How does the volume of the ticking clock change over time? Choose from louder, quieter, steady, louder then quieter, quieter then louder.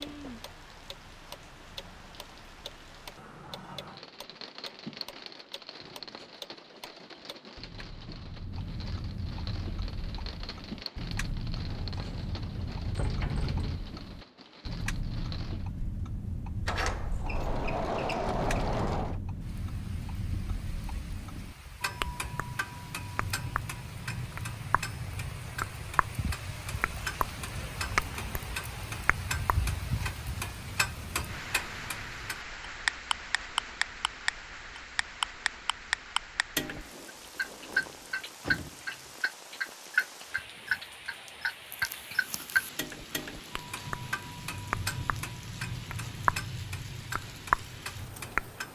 louder.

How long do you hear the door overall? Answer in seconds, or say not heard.
6 s.